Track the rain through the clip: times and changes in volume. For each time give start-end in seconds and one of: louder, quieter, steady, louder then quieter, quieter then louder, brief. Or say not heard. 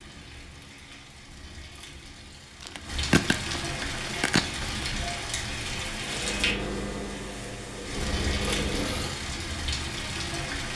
0.0-10.7 louder.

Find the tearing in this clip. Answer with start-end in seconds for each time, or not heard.
2.6-4.8.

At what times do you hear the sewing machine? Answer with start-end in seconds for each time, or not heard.
6.0-9.2.